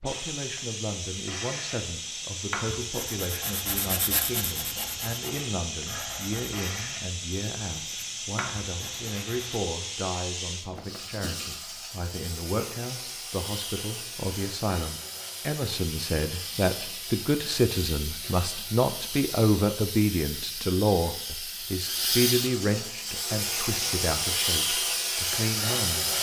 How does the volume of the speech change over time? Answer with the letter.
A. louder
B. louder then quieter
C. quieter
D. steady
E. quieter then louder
A.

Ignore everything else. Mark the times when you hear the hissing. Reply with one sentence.
You can hear the hissing from 0.0 to 26.1 s.